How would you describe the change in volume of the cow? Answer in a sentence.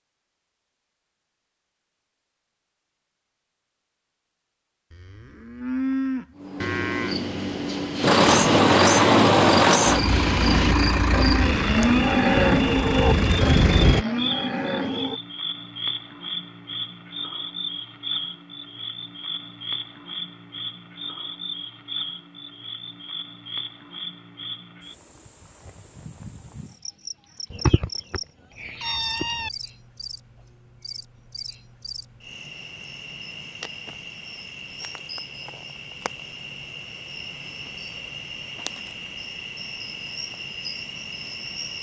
The loudness of the cow goes up, then down.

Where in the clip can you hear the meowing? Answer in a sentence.
The meowing can be heard from 27.5 to 29.5 s.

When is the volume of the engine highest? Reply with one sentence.
The loudest moment of the engine is at 9 seconds.